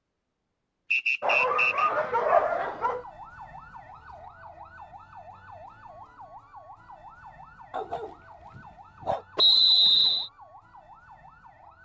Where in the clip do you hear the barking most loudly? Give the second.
2 s.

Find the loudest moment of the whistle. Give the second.
10 s.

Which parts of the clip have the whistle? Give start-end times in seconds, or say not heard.
0.9-1.9, 9.3-10.3.